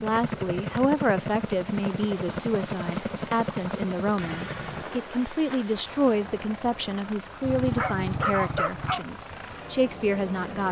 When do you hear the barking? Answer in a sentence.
You can hear the barking from 7.4 to 9.0 s.